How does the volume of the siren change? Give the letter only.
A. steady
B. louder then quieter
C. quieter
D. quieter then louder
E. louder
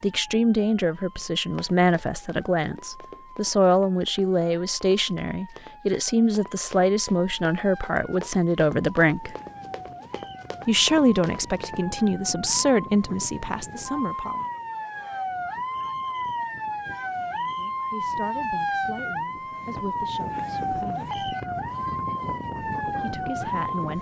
E.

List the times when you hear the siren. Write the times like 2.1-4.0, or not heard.
0.0-23.9.